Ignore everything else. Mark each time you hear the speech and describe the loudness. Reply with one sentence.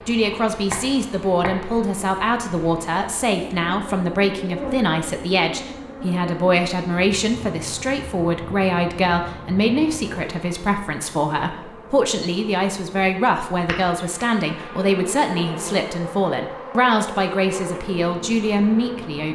The speech can be heard from 0.1 to 19.2 s, at a steady volume.